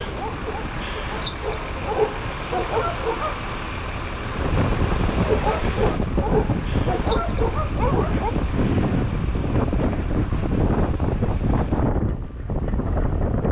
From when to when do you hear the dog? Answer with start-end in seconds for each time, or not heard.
0.0-3.4, 5.1-8.3.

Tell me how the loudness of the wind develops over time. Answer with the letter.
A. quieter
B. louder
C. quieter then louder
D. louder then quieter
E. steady
B.